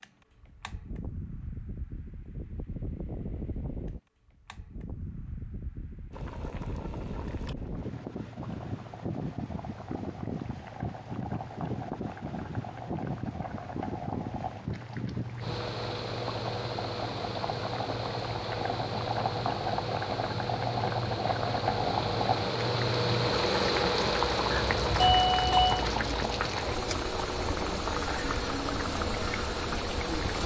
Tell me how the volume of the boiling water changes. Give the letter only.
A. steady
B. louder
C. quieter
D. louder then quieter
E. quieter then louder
B.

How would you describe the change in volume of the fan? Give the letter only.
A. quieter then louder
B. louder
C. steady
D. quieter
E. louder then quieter
B.